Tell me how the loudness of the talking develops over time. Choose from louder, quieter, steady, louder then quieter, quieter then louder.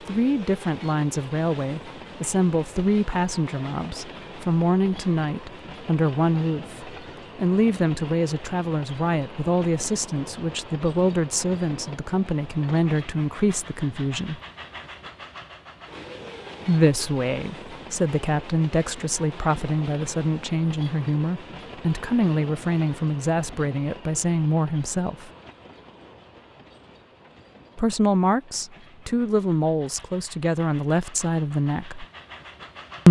steady.